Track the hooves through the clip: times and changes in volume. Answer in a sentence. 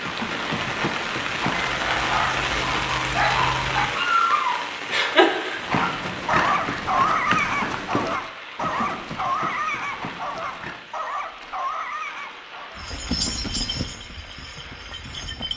You can hear the hooves briefly from 0.0 to 1.9 s; from 5.5 to 10.9 s, getting quieter; and briefly from 12.8 to 15.5 s.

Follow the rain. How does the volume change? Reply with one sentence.
The volume of the rain goes down.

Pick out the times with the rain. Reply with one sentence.
You can hear the rain from 0.0 to 15.5 s.